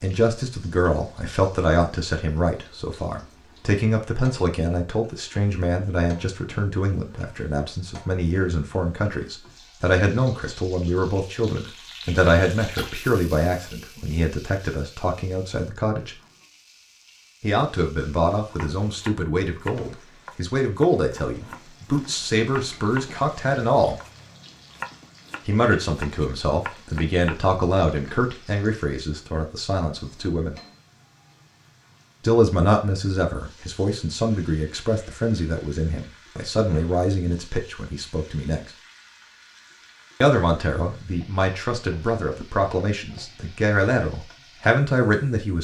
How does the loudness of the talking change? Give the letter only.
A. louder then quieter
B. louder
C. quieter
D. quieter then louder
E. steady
E.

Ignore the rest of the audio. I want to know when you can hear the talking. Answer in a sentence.
The talking can be heard from 0.0 to 16.1 s, from 17.4 to 23.9 s, from 25.4 to 30.6 s, from 32.2 to 38.7 s and from 40.2 to 45.5 s.